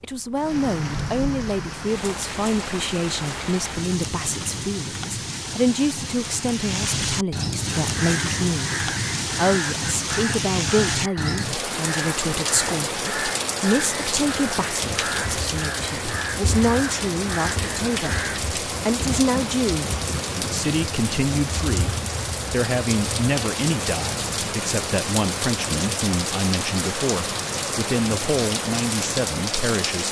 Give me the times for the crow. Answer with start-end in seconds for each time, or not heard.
7.8-18.4.